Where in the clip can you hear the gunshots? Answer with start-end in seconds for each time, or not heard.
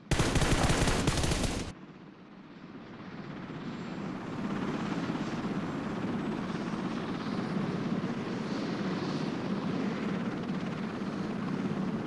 0.1-1.8.